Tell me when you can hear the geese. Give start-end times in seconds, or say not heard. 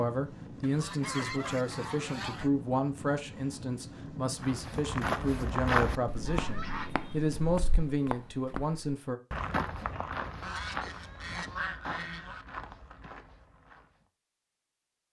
0.6-2.5, 6.2-7.2, 10.4-12.4.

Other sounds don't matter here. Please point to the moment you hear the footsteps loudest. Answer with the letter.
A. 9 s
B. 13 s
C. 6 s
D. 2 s
C.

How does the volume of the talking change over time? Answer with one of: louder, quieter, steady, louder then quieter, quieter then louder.
steady.